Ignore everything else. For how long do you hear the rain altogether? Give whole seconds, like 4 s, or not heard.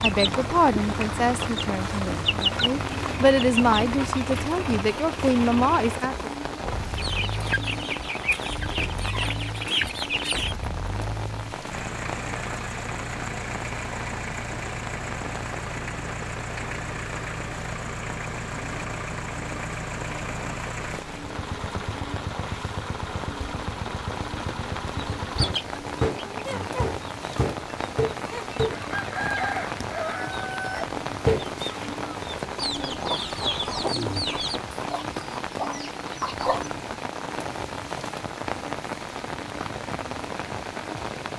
41 s.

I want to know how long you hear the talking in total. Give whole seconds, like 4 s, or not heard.
6 s.